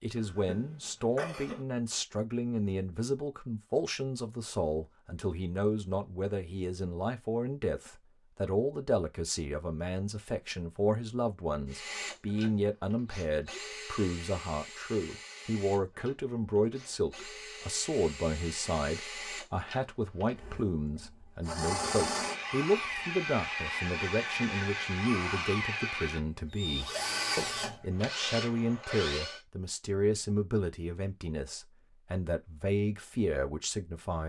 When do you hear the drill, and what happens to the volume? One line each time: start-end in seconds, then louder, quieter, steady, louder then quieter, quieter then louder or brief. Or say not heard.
11.7-29.4 louder.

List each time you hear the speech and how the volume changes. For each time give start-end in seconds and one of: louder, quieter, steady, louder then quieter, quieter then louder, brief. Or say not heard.
0.0-34.2 steady.